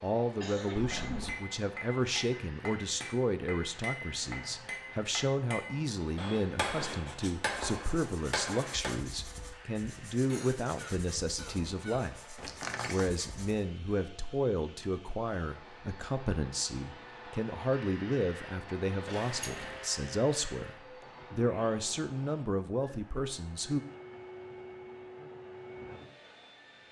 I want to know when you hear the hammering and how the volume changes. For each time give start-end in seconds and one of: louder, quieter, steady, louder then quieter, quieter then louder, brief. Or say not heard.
1.1-9.0 louder.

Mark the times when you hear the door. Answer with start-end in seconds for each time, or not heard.
0.8-1.4, 12.3-13.1, 19.1-19.8.